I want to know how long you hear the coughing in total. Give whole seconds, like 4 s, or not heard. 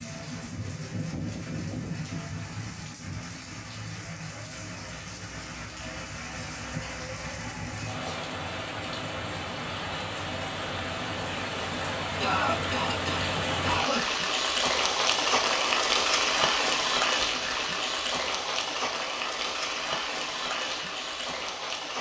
2 s.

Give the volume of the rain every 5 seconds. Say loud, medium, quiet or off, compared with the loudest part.
medium, medium, loud, loud, medium.